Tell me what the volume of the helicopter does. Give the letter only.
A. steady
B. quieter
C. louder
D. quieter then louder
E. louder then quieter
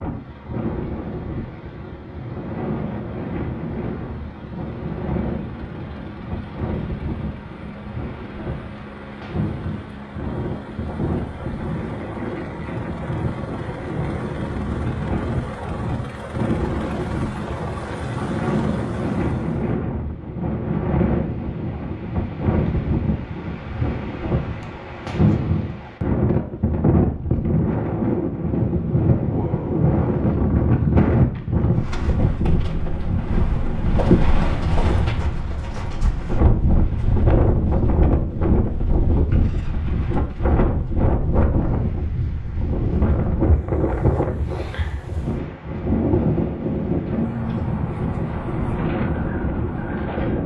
C.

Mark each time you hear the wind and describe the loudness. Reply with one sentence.
You can hear the wind from 0.0 to 50.4 s, getting louder.